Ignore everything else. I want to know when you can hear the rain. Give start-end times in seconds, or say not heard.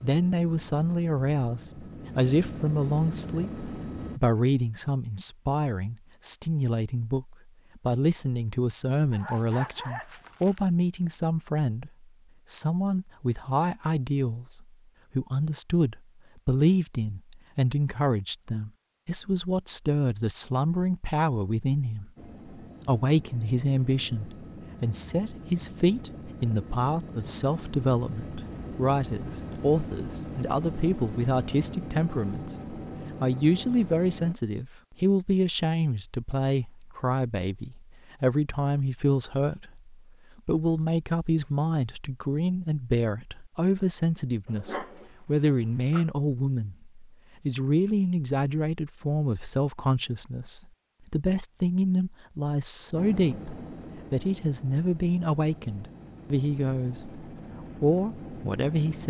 not heard.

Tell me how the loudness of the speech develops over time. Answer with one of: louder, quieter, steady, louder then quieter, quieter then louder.
steady.